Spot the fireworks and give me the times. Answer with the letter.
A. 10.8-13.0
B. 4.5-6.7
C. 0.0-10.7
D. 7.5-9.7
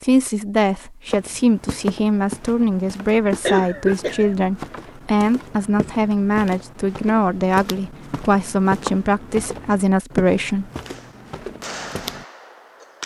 A.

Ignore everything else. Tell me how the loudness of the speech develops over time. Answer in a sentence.
The volume of the speech stays about the same.